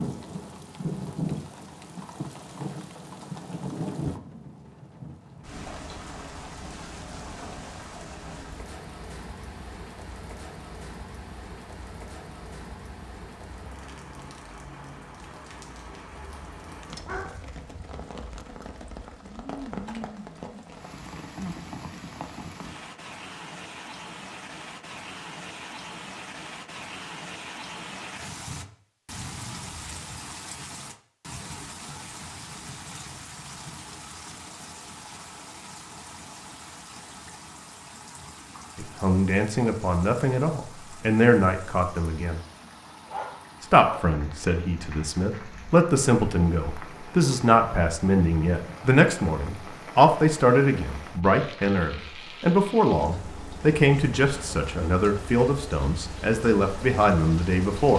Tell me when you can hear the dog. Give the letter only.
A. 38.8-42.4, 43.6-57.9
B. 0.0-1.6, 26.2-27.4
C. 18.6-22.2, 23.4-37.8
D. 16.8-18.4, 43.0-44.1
D.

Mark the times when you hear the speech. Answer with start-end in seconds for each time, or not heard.
38.8-42.4, 43.6-57.9.